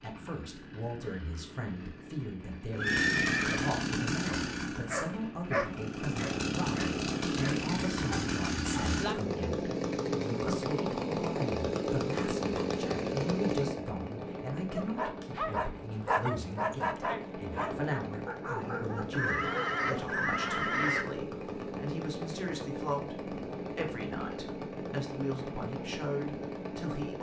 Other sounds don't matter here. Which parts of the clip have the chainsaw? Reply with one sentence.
You can hear the chainsaw from 0.0 to 27.1 s.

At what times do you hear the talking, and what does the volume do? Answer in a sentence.
The talking can be heard from 0.0 to 27.1 s, at a steady volume.